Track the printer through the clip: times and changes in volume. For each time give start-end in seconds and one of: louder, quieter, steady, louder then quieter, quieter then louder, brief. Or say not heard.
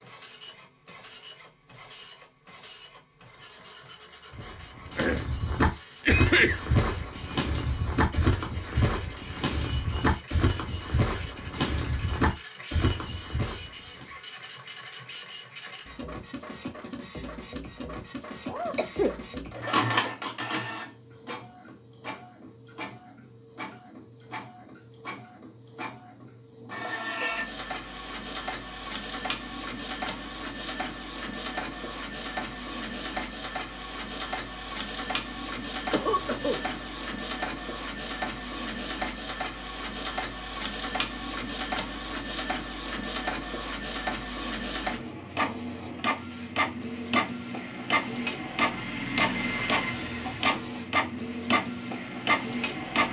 0.0-53.0 louder.